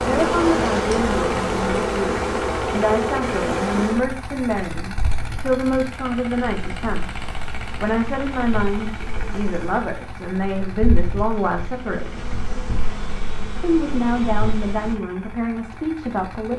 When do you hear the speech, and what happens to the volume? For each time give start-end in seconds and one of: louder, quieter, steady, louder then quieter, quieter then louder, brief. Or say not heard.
0.0-12.4 steady
13.6-16.5 brief.